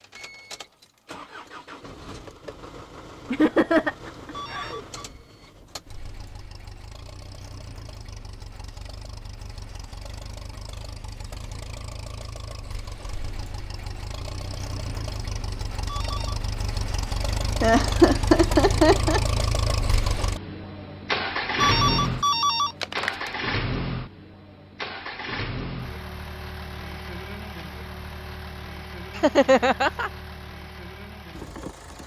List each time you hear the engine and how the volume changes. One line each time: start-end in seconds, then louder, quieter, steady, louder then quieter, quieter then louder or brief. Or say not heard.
0.0-32.0 louder then quieter.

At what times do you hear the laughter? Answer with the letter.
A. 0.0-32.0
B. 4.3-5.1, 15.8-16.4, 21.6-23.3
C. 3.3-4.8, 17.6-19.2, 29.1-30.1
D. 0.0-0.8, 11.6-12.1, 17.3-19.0
C.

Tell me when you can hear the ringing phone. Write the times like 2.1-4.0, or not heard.
4.3-5.1, 15.8-16.4, 21.6-23.3.